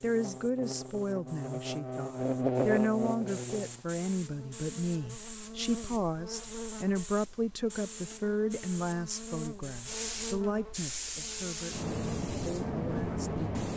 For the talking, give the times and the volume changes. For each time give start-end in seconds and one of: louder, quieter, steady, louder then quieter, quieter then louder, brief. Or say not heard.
0.0-13.5 quieter.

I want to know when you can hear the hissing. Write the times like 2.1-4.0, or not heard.
0.0-13.7.